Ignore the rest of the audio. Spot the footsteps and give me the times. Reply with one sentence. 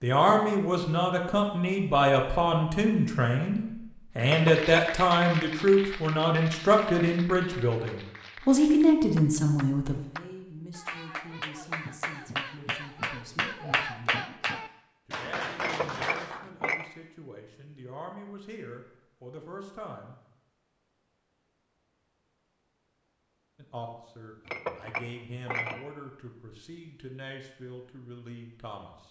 The footsteps can't be heard in this clip.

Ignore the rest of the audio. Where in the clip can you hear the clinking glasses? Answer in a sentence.
The clinking glasses can be heard from 4.2 to 4.7 s, from 15.6 to 16.9 s and from 24.4 to 25.9 s.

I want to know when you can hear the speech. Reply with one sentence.
The speech can be heard from 0.0 to 20.1 s and from 23.6 to 29.0 s.